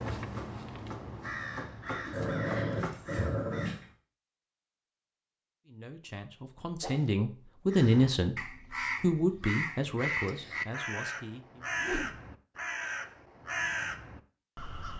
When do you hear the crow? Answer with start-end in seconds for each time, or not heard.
0.0-4.0, 7.7-14.9.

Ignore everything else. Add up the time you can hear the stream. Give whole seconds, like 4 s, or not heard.
not heard.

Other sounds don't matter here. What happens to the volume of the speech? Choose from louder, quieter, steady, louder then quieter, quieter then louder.
louder then quieter.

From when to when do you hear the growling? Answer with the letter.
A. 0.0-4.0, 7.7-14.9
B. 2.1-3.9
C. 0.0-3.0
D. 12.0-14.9
B.